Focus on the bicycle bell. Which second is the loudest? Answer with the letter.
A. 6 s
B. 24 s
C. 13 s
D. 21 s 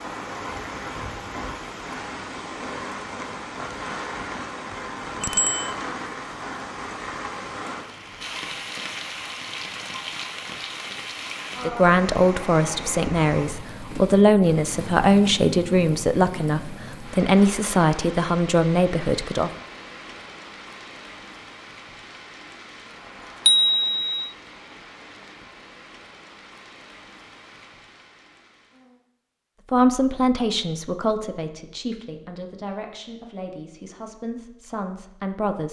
B.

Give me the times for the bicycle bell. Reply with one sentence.
You can hear the bicycle bell from 5.2 to 5.7 s and from 23.4 to 24.2 s.